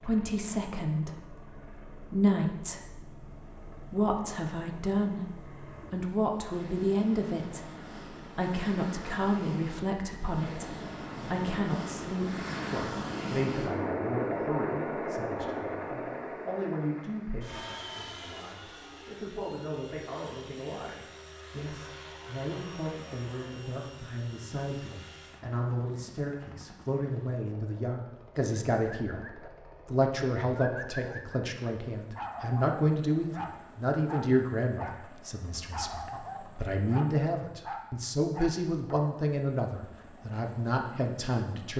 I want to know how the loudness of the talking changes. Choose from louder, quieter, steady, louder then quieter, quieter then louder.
quieter then louder.